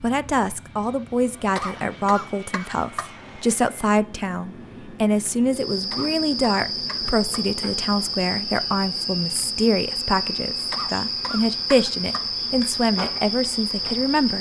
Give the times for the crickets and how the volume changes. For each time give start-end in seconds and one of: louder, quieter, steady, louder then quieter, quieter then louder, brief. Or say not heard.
5.5-14.3 steady.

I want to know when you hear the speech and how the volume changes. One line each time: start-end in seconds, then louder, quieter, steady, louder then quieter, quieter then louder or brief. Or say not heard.
0.0-14.3 steady.